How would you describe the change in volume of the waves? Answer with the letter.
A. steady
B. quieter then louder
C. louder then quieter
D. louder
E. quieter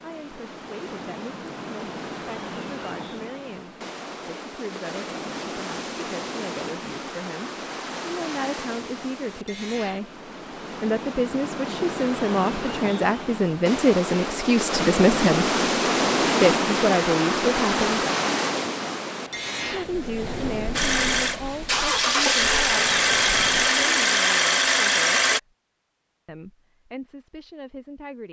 C.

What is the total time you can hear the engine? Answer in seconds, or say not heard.
5 s.